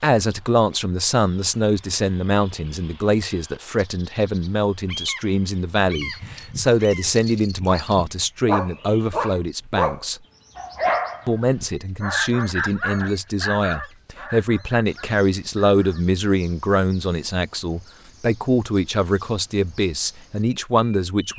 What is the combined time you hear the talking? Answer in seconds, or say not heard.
20 s.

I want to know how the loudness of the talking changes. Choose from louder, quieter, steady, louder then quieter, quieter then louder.
steady.